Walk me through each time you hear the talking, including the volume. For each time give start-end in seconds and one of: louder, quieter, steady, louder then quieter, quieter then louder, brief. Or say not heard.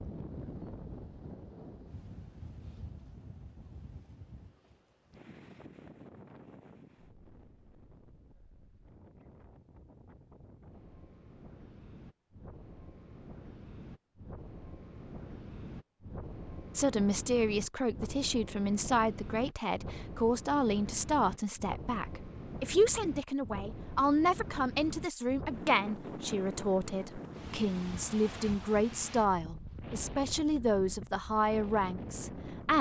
16.7-32.7 steady.